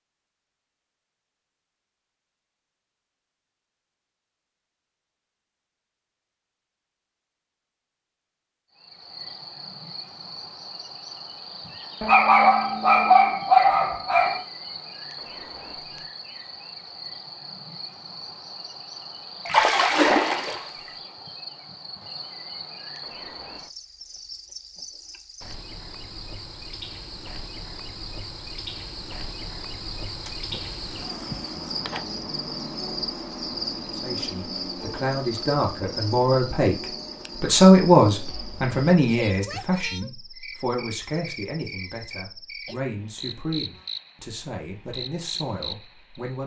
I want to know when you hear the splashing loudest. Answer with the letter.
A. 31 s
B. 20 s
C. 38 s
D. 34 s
B.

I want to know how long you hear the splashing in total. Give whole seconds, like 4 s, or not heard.
3 s.